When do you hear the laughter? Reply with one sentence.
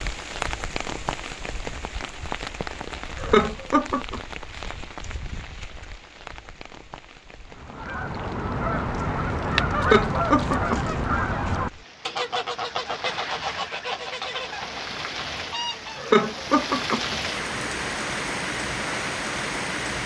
You can hear the laughter from 3.2 to 4.2 s, from 9.8 to 10.9 s and from 15.9 to 17.1 s.